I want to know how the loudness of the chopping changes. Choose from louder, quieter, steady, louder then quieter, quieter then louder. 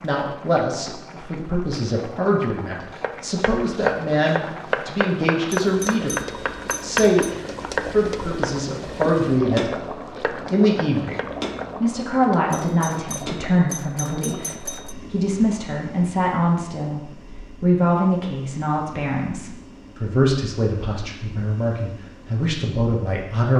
quieter.